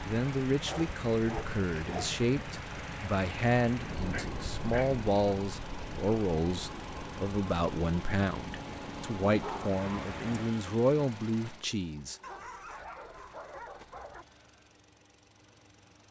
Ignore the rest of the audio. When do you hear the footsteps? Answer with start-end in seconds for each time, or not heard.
not heard.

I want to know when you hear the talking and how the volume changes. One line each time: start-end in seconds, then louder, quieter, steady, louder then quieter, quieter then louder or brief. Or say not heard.
0.0-12.2 steady.